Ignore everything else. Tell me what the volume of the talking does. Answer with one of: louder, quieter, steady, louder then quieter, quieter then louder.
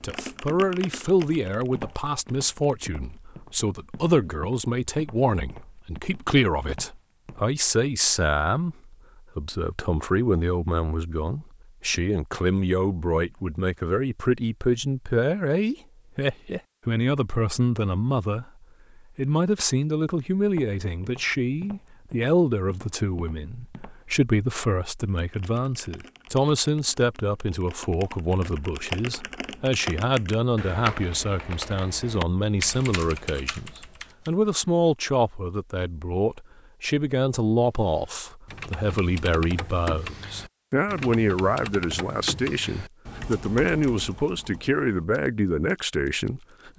steady.